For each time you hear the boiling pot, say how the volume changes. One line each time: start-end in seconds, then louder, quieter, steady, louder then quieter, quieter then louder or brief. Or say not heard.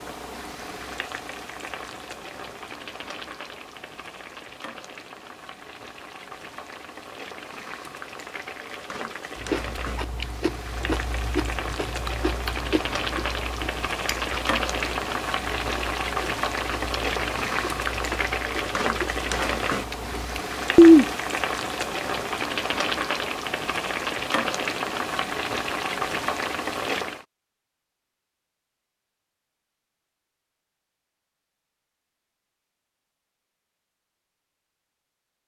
0.0-27.2 louder.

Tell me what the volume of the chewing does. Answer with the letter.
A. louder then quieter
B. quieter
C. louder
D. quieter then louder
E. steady
D.